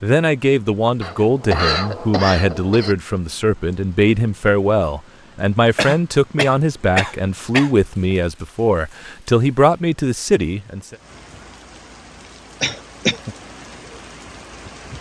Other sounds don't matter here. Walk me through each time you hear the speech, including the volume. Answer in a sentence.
The speech can be heard from 0.0 to 10.9 s, at a steady volume.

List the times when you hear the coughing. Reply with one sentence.
The coughing can be heard from 1.0 to 3.0 s, from 5.8 to 7.7 s and from 12.6 to 13.3 s.